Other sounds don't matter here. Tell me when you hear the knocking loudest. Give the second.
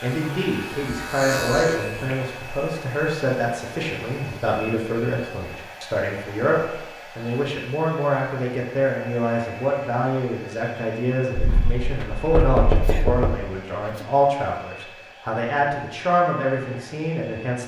13 s.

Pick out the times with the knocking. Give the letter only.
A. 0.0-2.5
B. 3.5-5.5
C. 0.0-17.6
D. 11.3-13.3
D.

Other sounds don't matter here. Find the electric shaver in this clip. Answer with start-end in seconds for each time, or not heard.
0.0-2.5.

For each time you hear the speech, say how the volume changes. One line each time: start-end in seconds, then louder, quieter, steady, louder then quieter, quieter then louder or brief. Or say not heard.
0.0-17.6 steady.